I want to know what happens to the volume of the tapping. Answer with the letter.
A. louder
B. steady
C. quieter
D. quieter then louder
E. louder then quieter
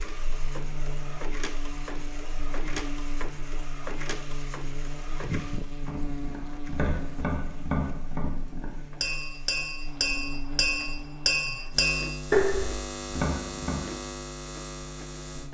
A.